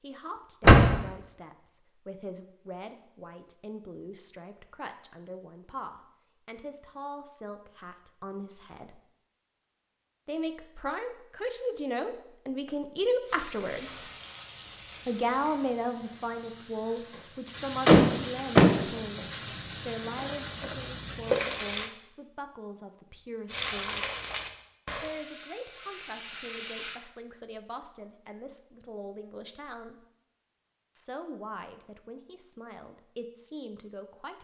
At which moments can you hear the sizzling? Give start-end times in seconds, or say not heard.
13.2-21.9, 23.4-27.0.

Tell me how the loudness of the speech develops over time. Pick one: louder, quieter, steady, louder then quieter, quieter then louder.
louder then quieter.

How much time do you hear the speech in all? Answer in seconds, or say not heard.
30 s.